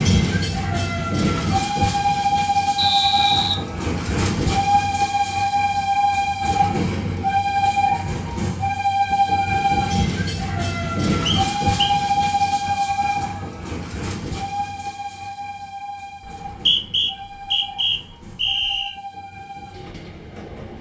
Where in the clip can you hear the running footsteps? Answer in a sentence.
The running footsteps can't be heard in this clip.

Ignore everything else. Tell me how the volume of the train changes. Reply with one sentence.
The volume of the train goes down.